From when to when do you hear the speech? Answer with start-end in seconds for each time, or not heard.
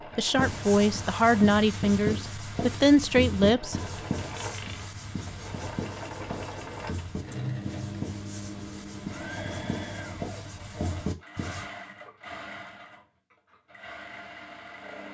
0.1-3.8.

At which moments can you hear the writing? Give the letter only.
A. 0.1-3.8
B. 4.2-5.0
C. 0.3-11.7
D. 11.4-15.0
C.